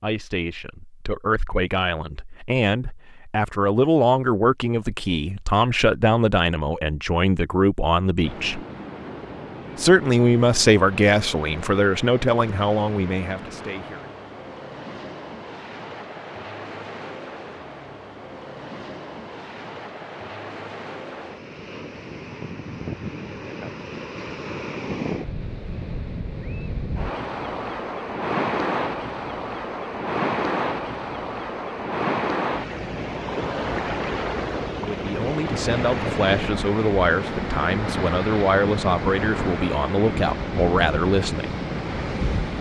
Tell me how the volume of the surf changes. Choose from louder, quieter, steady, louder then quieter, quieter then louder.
louder.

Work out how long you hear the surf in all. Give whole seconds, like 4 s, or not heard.
34 s.